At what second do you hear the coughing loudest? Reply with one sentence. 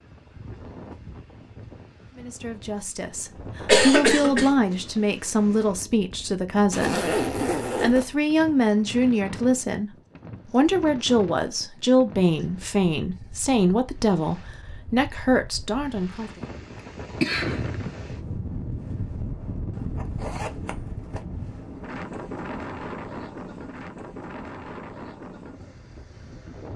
The volume of the coughing peaks at 4 seconds.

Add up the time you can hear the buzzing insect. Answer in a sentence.
You can't hear the buzzing insect here.